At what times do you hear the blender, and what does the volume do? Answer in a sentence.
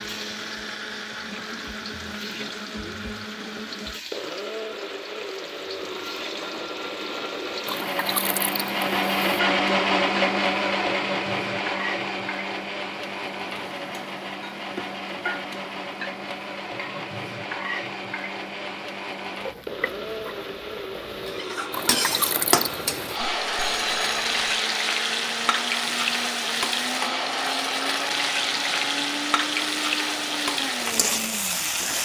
The blender can be heard from 0.0 to 31.9 s, getting louder then quieter.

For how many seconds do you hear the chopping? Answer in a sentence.
The chopping can't be heard in this clip.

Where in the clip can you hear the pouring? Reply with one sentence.
The pouring can be heard from 7.7 to 9.4 s and from 21.7 to 23.2 s.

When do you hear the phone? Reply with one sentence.
You can hear the phone from 23.4 to 24.6 s.